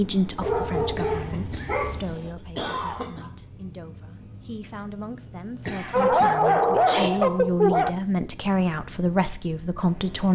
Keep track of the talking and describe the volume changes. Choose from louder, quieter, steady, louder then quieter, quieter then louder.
quieter then louder.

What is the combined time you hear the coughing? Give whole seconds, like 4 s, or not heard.
3 s.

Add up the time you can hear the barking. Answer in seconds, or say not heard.
4 s.